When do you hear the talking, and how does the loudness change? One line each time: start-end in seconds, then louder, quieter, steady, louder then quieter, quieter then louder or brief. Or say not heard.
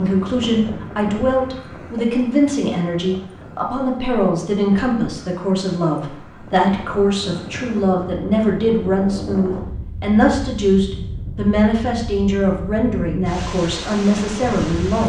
0.0-15.0 steady.